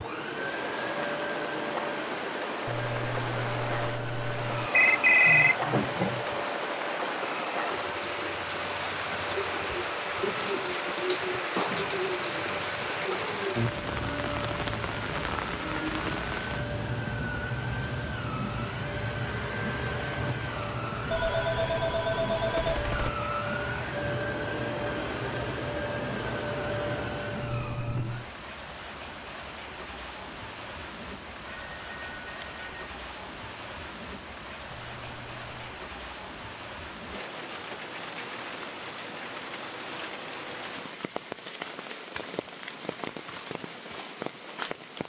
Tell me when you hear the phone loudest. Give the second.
5 s.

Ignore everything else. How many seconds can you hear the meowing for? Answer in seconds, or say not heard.
4 s.